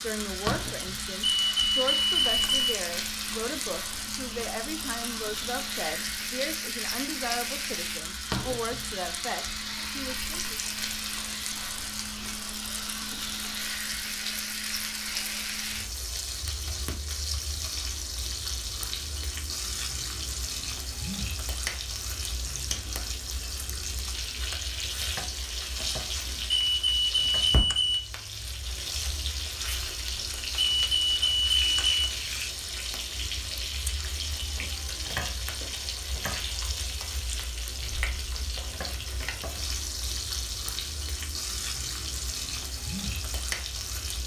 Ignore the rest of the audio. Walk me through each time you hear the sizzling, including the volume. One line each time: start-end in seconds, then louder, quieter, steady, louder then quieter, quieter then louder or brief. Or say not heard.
0.0-44.2 steady.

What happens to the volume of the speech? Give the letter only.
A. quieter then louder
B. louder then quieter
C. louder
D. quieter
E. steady
E.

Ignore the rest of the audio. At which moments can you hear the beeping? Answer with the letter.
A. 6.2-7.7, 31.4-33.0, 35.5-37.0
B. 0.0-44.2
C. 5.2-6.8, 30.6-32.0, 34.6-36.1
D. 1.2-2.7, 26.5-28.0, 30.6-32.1
D.